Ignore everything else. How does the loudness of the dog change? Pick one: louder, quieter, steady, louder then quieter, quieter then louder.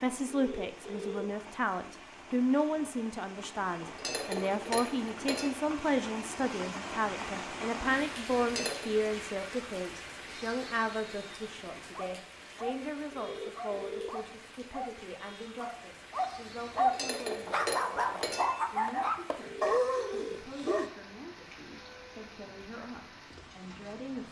louder.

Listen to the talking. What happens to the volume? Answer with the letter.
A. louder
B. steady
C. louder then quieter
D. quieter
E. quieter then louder
D.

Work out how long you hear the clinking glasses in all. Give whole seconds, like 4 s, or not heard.
4 s.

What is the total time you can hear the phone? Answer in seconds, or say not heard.
3 s.